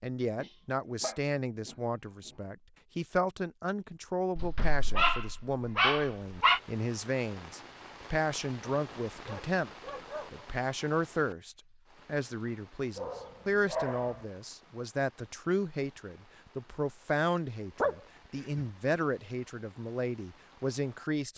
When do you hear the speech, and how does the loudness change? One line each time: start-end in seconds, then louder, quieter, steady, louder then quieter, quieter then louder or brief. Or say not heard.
0.0-21.3 steady.